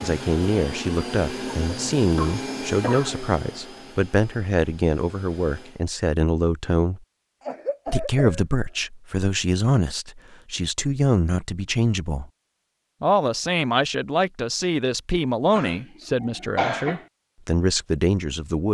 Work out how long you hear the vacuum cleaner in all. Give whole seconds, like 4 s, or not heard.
6 s.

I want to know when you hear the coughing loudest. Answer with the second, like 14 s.
17 s.